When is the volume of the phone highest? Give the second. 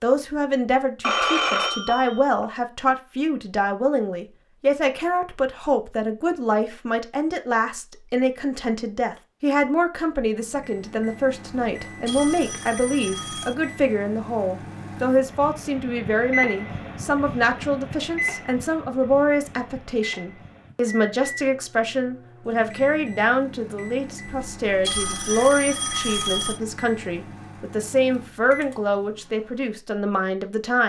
1 s.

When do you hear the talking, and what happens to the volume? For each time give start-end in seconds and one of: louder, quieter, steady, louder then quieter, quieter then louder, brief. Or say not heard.
0.0-30.8 steady.